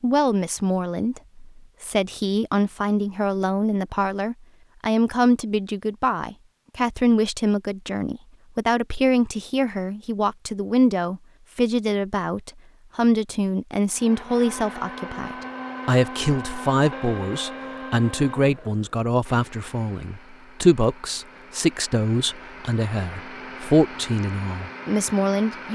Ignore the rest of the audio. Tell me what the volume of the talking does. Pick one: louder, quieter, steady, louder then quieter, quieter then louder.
steady.